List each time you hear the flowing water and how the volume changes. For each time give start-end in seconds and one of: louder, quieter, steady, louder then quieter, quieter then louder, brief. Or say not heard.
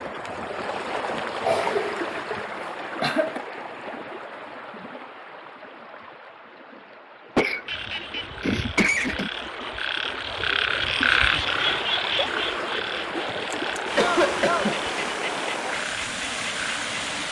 0.0-17.2 quieter then louder.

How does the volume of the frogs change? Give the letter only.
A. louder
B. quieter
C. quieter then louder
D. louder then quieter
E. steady
D.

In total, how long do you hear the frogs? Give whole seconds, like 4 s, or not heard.
9 s.